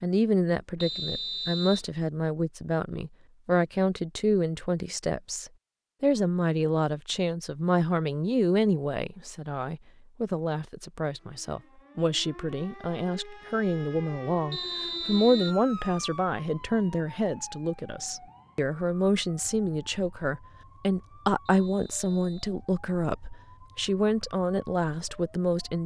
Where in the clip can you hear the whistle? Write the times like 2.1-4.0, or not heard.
0.8-1.9, 14.5-15.6, 21.4-22.3.